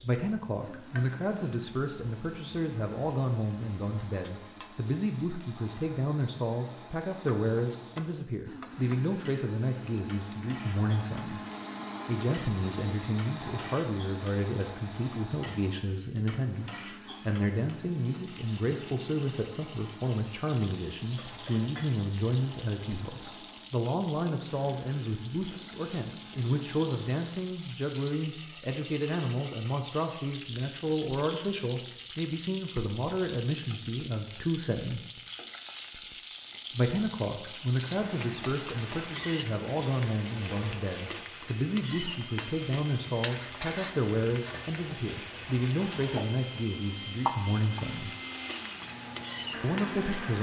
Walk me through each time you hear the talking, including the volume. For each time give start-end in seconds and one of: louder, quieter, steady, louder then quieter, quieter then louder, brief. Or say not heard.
0.0-11.4 steady
12.1-35.0 steady
36.7-48.1 steady
49.6-50.3 brief.